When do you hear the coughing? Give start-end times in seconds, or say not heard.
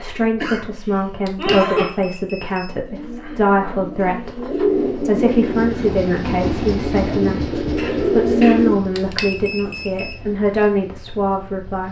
0.4-1.9, 7.8-8.6.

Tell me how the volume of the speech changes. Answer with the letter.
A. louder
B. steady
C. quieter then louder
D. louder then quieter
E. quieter
B.